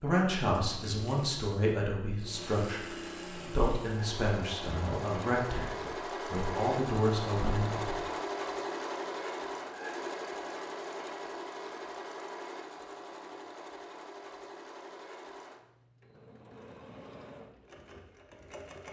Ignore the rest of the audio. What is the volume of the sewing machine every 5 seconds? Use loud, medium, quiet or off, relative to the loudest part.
medium, loud, medium, quiet.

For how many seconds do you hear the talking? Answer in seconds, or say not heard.
8 s.